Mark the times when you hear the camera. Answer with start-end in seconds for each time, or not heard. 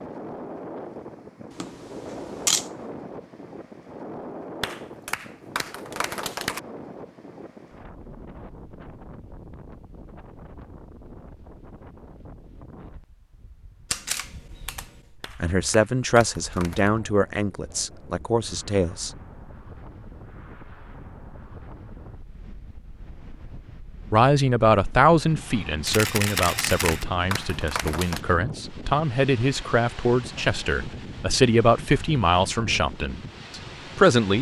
1.5-2.7, 13.9-14.9, 25.9-27.1.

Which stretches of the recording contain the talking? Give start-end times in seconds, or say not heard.
15.4-19.1, 24.1-34.3.